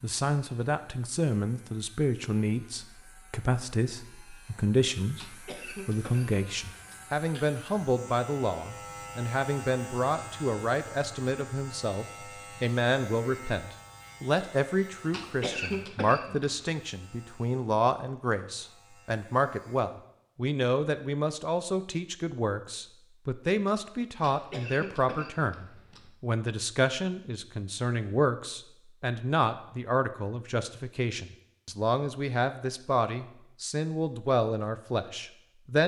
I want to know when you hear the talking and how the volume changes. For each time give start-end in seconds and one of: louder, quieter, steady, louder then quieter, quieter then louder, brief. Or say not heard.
0.0-35.8 steady.